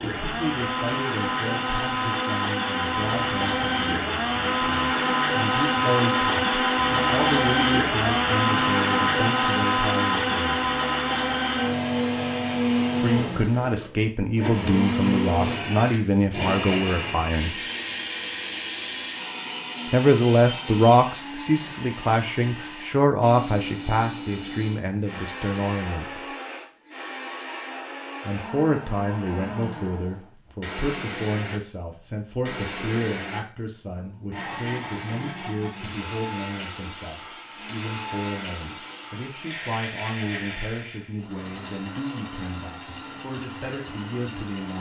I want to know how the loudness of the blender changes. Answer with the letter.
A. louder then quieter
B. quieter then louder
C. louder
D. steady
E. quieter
E.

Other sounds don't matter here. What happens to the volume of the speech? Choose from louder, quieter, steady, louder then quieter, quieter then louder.
louder then quieter.